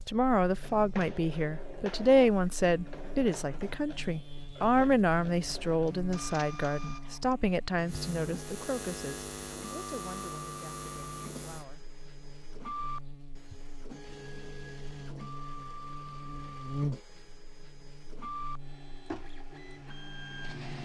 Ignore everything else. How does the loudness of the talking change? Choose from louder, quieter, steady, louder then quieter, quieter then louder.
quieter.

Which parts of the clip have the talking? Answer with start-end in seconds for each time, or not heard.
0.1-11.8.